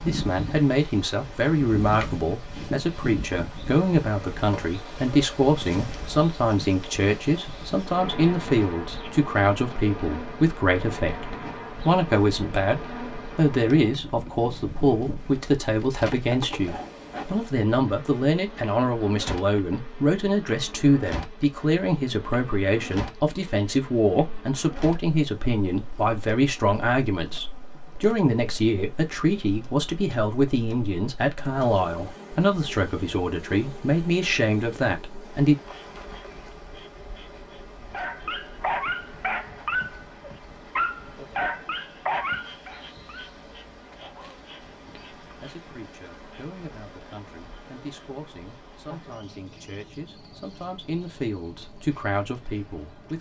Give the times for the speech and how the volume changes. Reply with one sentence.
You can hear the speech from 0.1 to 35.5 s, at a steady volume; and from 45.2 to 53.1 s, getting louder.